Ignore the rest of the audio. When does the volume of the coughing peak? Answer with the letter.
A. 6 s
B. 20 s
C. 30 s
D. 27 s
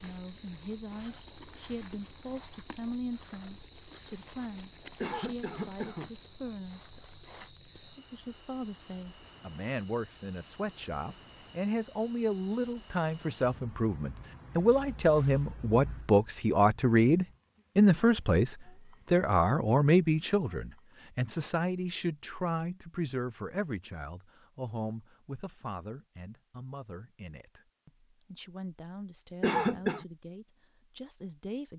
C.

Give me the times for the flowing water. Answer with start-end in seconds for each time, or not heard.
not heard.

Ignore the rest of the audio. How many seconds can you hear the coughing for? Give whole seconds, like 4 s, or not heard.
2 s.